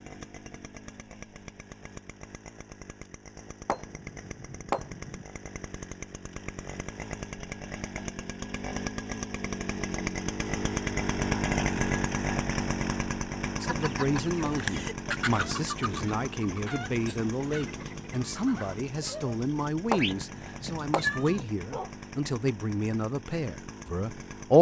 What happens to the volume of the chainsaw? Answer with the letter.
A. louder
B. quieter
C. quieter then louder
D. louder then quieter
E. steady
D.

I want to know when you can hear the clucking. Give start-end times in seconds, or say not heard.
13.6-19.4.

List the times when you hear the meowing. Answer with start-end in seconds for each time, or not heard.
19.9-21.9.